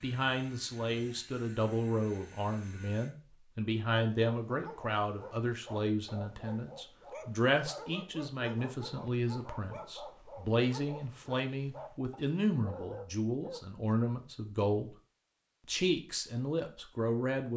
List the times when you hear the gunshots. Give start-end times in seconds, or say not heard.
not heard.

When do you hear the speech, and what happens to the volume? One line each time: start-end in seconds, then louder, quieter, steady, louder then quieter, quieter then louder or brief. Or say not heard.
0.0-14.9 steady
15.7-17.5 brief.